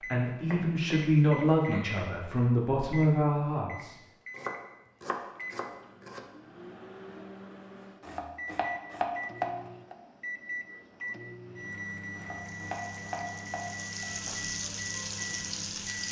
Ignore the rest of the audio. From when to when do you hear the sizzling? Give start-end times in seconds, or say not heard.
12.3-16.0.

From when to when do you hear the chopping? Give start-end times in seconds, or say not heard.
0.3-2.1, 4.3-6.2, 8.0-9.9, 12.2-14.1.